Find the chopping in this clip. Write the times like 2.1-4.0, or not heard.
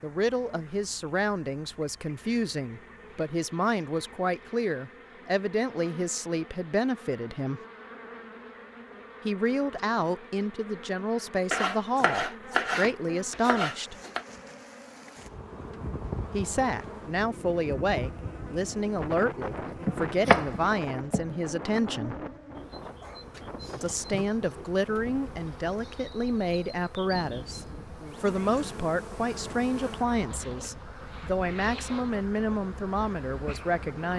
11.5-14.2, 19.6-21.4.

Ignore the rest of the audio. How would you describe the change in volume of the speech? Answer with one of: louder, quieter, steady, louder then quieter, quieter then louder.
steady.